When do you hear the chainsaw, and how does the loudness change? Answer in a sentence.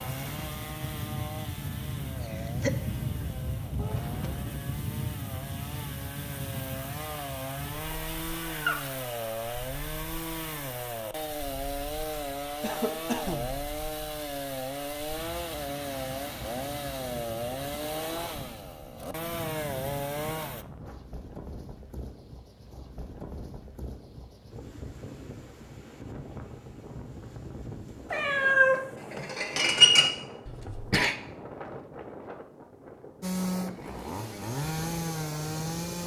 You can hear the chainsaw from 0.0 to 20.6 s, getting louder; and briefly from 33.2 to 36.0 s.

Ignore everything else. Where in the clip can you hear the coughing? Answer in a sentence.
You can hear the coughing from 2.2 to 2.8 s, from 12.6 to 13.6 s and from 30.4 to 31.1 s.